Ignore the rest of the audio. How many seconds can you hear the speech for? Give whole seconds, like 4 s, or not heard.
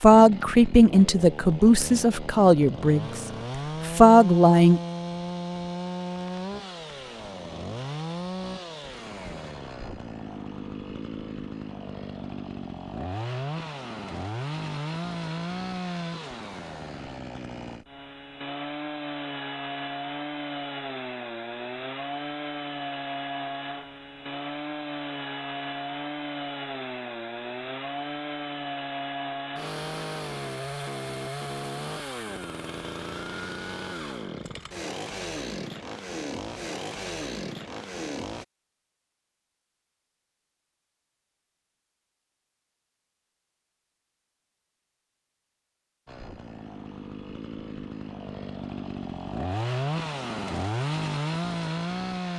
4 s.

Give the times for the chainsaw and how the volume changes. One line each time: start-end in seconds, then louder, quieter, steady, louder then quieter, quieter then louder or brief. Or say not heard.
0.0-38.5 steady
46.0-52.3 louder.